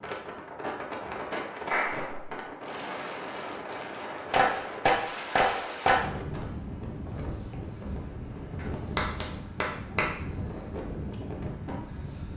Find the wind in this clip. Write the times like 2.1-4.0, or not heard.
0.0-12.3.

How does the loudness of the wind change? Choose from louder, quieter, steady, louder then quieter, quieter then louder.
steady.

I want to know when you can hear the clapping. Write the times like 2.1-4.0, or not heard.
1.7-2.1, 4.3-6.0, 8.6-10.1.